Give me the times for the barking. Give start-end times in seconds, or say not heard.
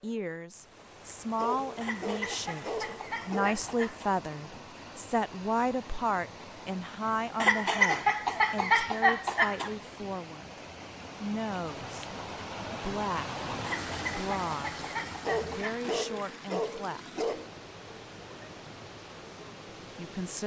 1.4-3.6, 15.2-17.5.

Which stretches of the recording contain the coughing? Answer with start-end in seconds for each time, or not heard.
1.8-4.2, 7.3-9.7, 13.6-15.8.